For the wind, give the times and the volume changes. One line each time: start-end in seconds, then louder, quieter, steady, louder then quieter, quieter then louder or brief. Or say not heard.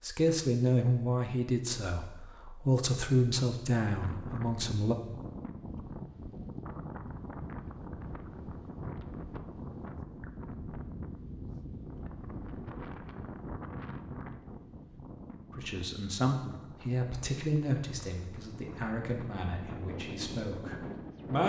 4.0-21.4 quieter then louder.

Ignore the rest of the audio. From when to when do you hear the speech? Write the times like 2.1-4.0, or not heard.
0.0-5.0, 15.5-21.4.